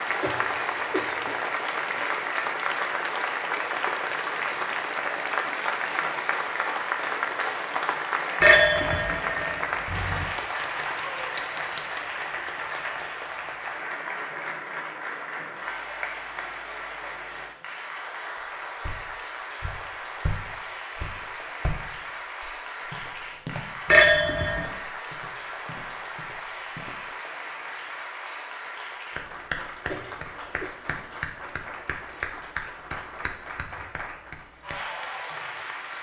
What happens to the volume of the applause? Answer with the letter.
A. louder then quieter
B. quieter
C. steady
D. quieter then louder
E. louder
B.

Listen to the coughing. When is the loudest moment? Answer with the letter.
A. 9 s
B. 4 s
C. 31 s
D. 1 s
D.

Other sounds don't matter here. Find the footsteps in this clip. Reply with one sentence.
You can hear the footsteps from 18.8 to 27.1 s.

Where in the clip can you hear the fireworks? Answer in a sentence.
The fireworks can't be heard in this clip.